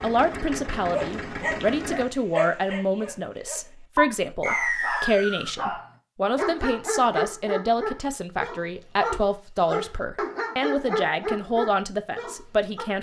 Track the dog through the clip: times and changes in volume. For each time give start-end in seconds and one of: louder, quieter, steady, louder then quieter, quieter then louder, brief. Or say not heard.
0.9-12.8 steady.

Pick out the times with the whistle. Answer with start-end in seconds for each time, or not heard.
4.4-5.5.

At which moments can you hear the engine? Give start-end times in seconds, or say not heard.
0.0-2.1.